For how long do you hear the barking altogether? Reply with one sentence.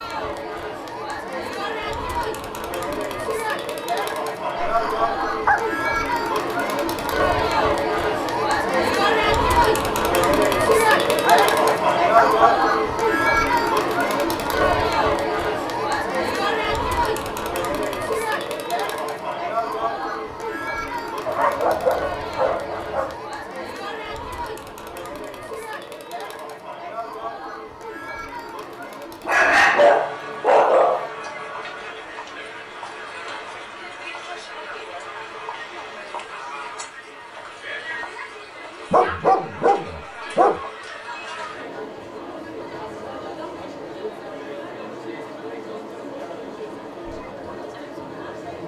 You can hear the barking for 8 seconds altogether.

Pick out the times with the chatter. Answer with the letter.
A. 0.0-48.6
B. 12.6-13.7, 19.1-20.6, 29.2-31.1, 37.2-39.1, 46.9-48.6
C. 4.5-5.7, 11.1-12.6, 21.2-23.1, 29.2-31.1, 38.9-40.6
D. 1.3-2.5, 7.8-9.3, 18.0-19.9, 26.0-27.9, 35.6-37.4
A.